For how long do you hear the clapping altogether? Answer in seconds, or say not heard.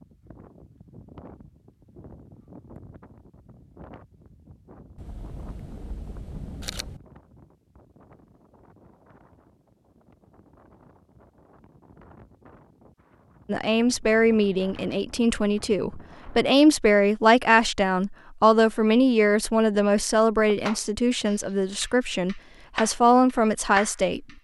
4 s.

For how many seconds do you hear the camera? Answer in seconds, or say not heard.
2 s.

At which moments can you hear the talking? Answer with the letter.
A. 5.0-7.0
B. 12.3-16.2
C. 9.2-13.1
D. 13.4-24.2
D.